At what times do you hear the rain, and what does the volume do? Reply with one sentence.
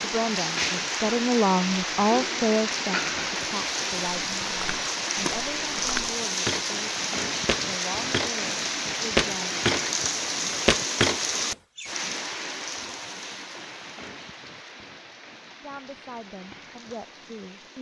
You can hear the rain from 0.0 to 17.7 s, getting quieter.